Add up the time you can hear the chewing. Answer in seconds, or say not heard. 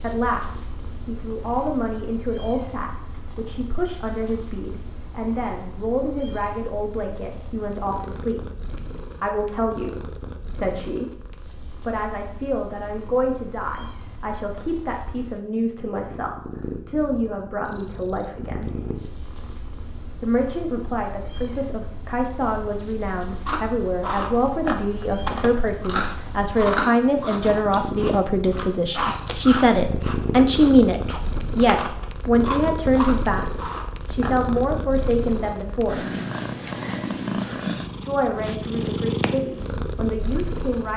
11 s.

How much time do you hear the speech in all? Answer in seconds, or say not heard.
37 s.